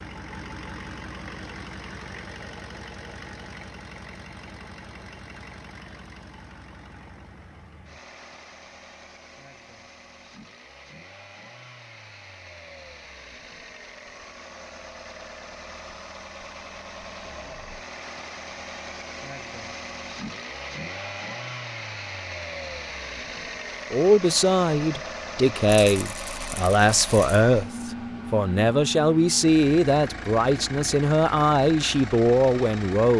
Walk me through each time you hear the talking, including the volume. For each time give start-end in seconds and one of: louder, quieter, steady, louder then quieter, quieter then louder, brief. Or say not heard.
23.9-33.1 steady.